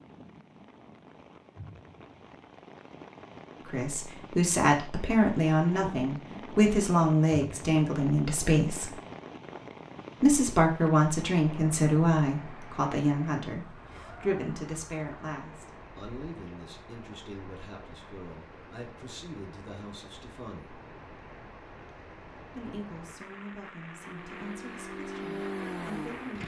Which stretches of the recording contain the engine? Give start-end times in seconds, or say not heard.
23.9-26.4.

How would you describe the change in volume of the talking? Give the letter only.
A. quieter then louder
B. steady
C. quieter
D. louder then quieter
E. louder
C.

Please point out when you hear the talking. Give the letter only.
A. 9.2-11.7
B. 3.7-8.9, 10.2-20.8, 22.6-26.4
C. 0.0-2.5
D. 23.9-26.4
B.